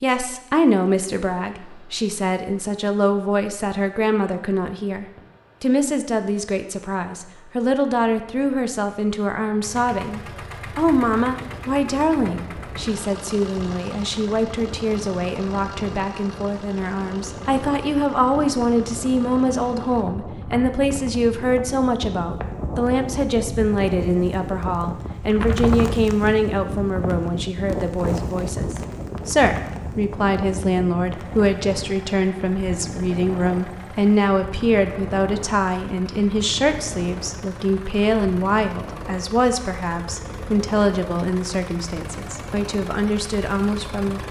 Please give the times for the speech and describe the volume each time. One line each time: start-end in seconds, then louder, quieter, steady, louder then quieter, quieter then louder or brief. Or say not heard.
0.0-44.2 steady.